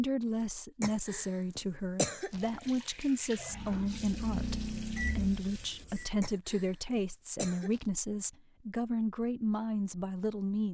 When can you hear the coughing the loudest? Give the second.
2 s.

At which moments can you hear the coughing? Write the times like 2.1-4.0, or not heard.
0.8-2.7, 6.2-7.8.